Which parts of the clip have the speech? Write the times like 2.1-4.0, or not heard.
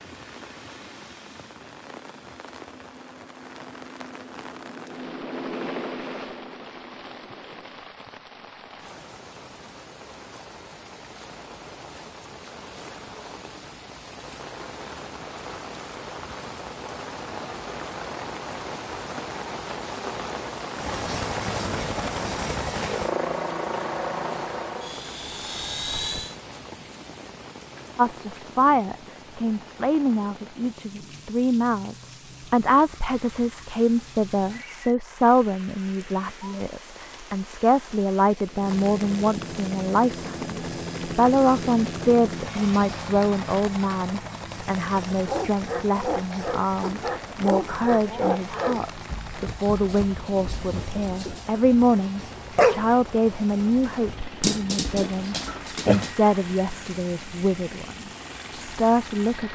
27.9-59.5.